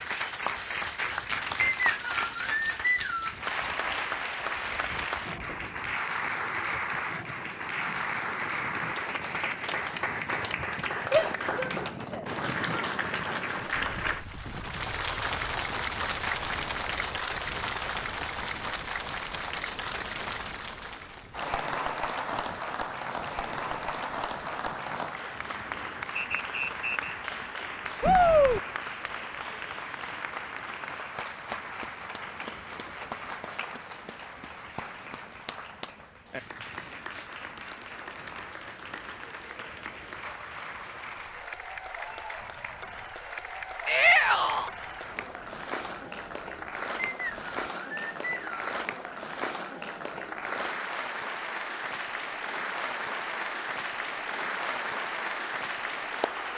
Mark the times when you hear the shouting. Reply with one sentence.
You can hear the shouting from 11.1 to 12.8 s, from 28.0 to 28.6 s and from 43.9 to 44.7 s.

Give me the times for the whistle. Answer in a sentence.
The whistle can be heard from 1.6 to 3.4 s, from 26.1 to 27.1 s and from 47.0 to 48.8 s.